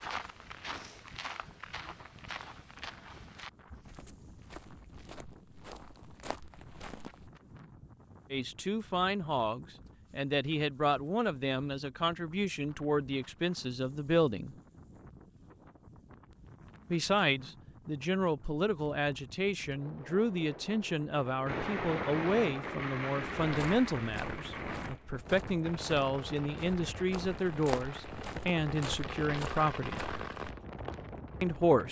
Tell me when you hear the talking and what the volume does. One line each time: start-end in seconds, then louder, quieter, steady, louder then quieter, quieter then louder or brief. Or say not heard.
8.3-14.6 steady
16.9-30.1 steady
31.4-31.8 brief.